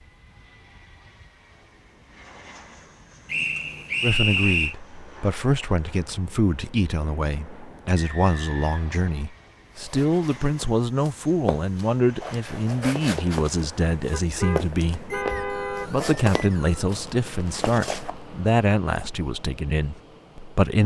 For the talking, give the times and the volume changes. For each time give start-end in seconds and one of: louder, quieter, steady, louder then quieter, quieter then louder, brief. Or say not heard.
4.0-20.8 steady.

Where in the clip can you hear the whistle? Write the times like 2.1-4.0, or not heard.
3.3-4.8, 8.0-9.3, 15.1-16.8.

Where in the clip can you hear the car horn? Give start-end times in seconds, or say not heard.
14.1-15.9.